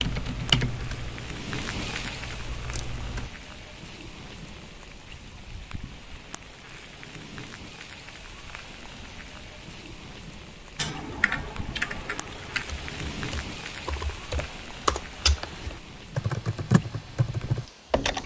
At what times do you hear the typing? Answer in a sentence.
The typing can be heard from 0.0 to 3.3 s and from 10.8 to 18.2 s.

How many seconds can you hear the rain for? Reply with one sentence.
You can hear the rain for 18 seconds altogether.